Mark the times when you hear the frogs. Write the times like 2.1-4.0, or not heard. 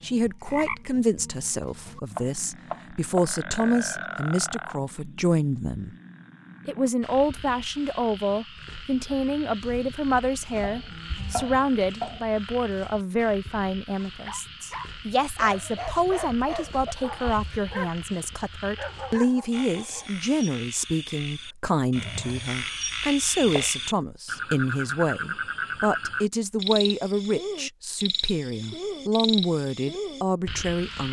0.0-31.0.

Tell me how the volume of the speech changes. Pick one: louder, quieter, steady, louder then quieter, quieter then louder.
steady.